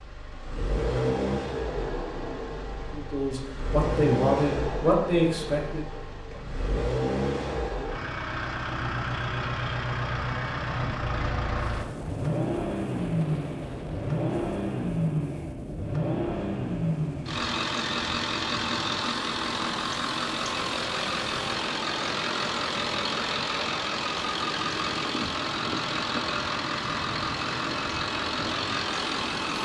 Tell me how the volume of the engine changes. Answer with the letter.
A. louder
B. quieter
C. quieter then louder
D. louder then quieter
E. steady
E.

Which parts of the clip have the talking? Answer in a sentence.
You can hear the talking from 2.9 to 5.8 s.